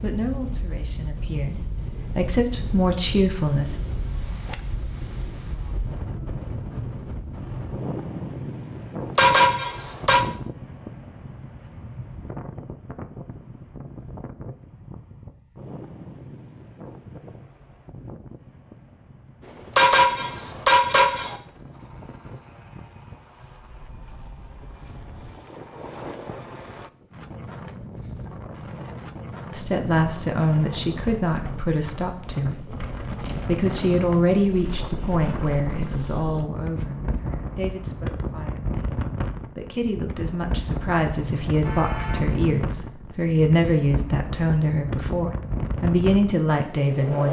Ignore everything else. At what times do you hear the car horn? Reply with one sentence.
The car horn can be heard from 9.2 to 10.2 s, from 19.8 to 21.4 s and from 41.2 to 42.4 s.